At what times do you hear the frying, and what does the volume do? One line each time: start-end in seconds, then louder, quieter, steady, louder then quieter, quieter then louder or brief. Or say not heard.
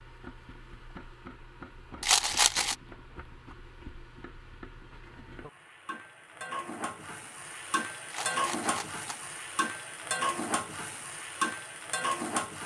0.0-12.6 louder.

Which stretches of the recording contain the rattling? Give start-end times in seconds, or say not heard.
2.0-2.8, 8.1-9.2.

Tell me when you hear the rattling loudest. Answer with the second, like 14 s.
2 s.